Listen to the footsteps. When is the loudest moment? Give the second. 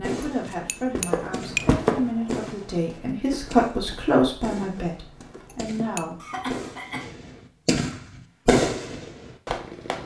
2 s.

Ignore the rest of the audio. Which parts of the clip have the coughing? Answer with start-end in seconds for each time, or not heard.
6.2-7.0.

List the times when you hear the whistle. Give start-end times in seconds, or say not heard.
not heard.